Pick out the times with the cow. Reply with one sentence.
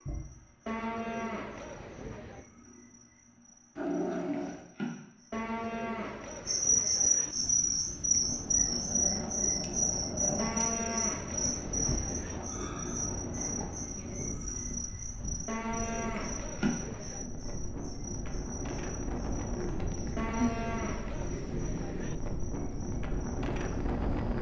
You can hear the cow from 0.7 to 2.5 s, from 5.3 to 7.3 s, from 10.3 to 12.4 s, from 15.4 to 17.2 s and from 20.1 to 22.1 s.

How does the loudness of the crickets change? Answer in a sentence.
The volume of the crickets goes up, then down.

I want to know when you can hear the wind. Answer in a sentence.
You can hear the wind from 7.3 to 24.3 s.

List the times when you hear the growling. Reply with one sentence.
The growling can be heard from 3.8 to 4.7 s, from 8.7 to 10.7 s and from 19.8 to 22.2 s.